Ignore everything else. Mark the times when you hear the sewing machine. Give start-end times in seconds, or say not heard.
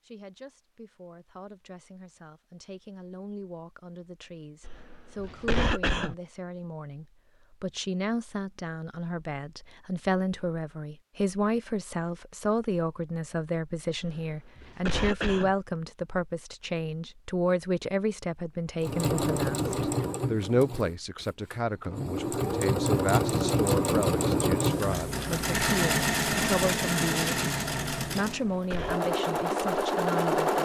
18.8-30.6.